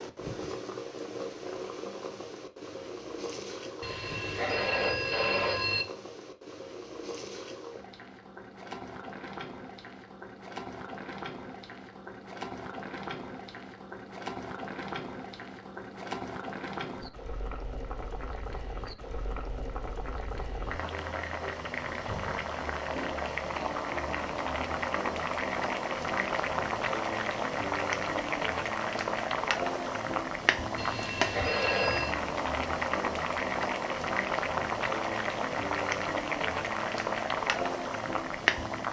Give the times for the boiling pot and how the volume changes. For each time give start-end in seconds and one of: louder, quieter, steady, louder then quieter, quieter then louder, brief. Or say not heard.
0.0-38.8 louder.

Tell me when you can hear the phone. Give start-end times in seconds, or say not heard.
3.8-5.8, 30.8-32.1.